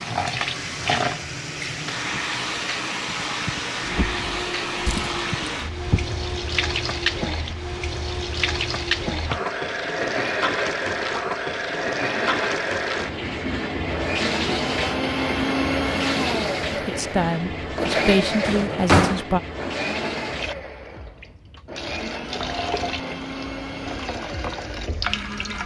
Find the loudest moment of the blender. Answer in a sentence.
The loudest moment of the blender is at 16 seconds.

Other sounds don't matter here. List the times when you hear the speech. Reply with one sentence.
The speech can be heard from 16.7 to 19.4 s.